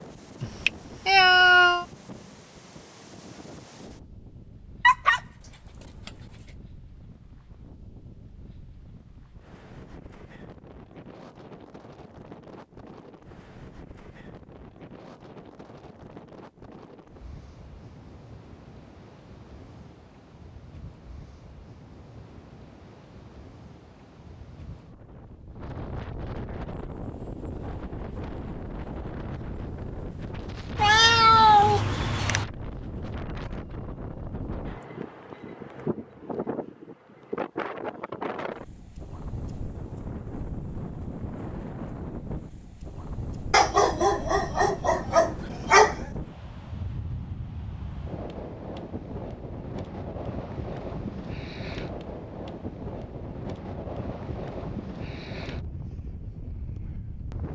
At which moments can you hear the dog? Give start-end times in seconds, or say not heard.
4.8-6.1, 43.5-46.0.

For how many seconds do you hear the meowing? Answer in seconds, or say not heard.
3 s.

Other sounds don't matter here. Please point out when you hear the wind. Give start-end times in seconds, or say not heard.
0.0-57.4.